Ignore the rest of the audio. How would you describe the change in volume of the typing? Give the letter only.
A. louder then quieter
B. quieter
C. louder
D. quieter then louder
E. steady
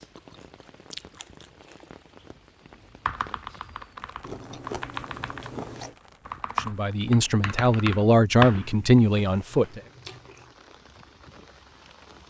C.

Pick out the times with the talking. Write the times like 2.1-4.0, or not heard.
6.5-9.8.